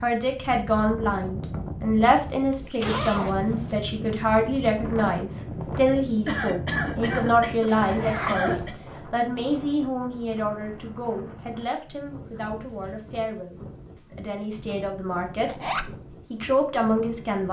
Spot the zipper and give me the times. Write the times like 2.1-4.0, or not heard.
2.5-3.8, 7.7-8.8, 15.4-15.9.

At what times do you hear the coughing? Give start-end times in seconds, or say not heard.
6.2-8.8.